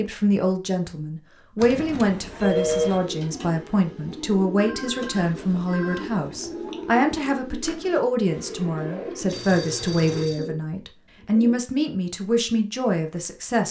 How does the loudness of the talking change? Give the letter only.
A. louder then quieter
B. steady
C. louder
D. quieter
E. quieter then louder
B.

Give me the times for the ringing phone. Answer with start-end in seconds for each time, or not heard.
1.6-3.0, 4.5-6.0, 9.2-10.5.